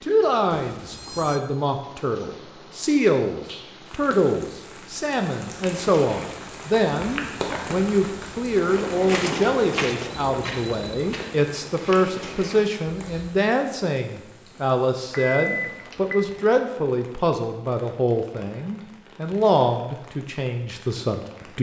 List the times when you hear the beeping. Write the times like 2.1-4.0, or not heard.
0.5-1.4, 10.2-11.2, 15.1-16.3.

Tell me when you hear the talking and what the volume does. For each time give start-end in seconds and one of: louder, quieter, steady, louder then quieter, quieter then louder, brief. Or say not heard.
0.0-21.5 steady.